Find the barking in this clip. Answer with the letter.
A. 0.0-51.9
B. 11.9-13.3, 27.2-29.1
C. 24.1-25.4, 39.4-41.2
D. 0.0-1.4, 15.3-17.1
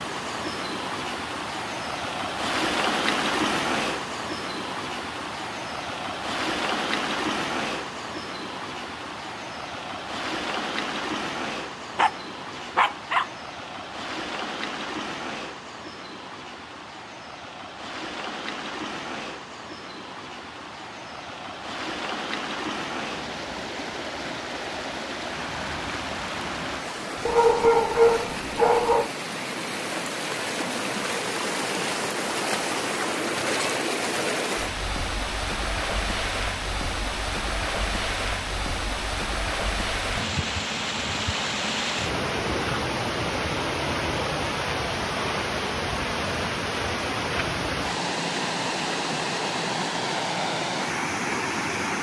B.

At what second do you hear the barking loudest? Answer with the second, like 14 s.
28 s.